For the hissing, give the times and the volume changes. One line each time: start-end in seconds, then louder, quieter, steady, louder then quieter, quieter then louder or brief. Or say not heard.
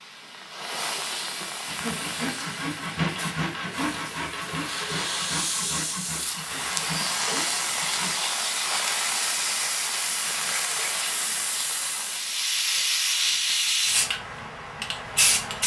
0.0-15.6 louder.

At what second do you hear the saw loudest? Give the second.
3 s.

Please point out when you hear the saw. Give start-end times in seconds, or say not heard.
1.6-8.2.